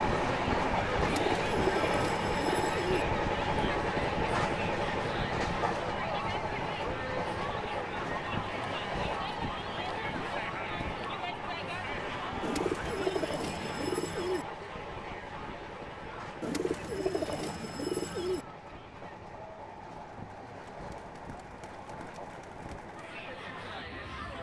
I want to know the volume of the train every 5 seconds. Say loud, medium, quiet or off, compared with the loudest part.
loud, medium, medium, quiet, quiet.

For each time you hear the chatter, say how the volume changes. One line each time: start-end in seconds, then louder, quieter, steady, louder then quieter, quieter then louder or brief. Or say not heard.
0.1-24.3 quieter.